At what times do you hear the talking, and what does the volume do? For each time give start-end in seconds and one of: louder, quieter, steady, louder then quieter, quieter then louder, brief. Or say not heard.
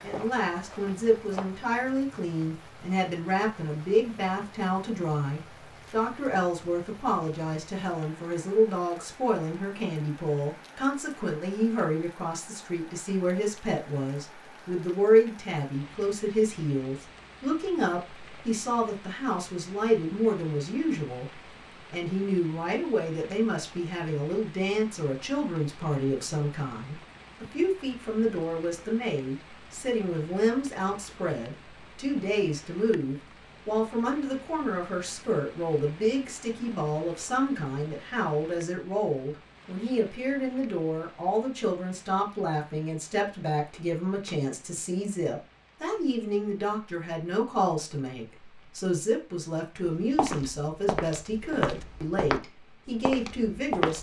0.0-53.9 steady.